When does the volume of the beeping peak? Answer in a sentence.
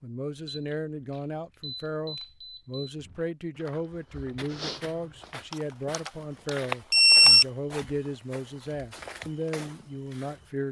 The volume of the beeping peaks at 7 seconds.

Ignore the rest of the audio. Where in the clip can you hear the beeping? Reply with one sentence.
The beeping can be heard from 0.5 to 2.9 s and from 5.5 to 7.5 s.